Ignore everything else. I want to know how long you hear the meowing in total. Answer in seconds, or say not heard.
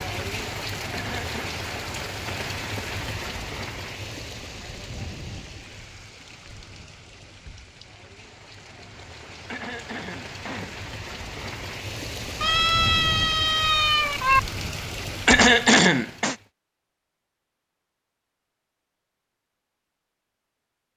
2 s.